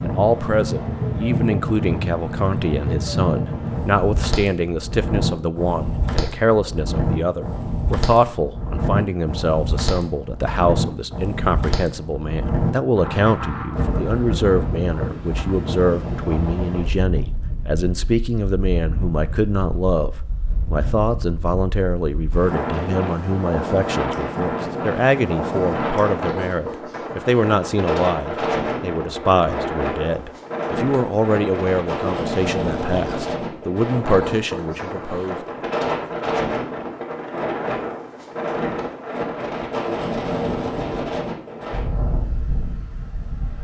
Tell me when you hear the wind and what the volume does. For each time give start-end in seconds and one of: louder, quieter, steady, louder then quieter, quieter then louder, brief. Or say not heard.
0.0-43.5 steady.